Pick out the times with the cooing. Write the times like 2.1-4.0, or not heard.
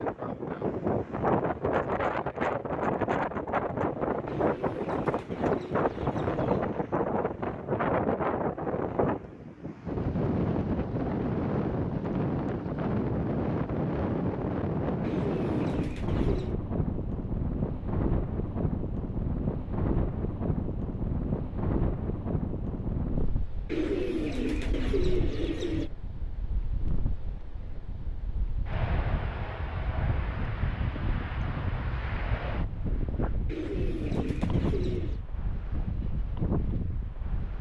4.2-6.7, 15.0-16.6, 23.6-25.9, 33.5-35.2.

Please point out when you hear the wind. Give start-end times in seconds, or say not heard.
0.0-37.5.